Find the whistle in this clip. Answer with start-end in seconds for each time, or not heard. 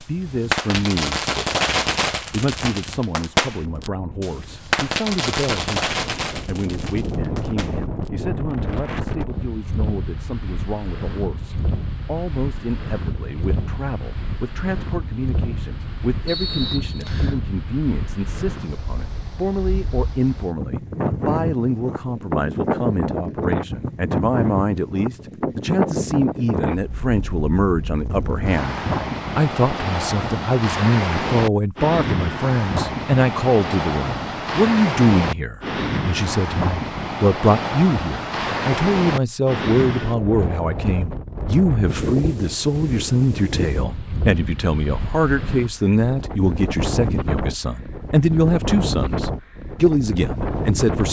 16.2-17.4.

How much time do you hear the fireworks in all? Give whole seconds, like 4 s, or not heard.
8 s.